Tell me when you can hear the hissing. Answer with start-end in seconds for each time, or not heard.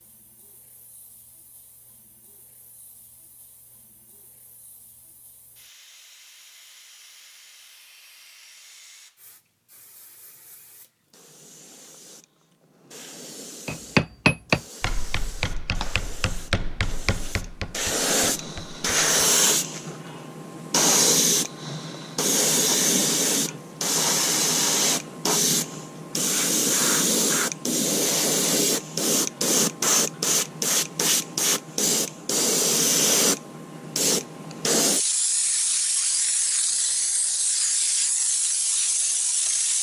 0.0-39.7.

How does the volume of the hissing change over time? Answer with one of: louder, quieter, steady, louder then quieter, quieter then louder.
louder.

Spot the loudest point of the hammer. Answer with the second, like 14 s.
14 s.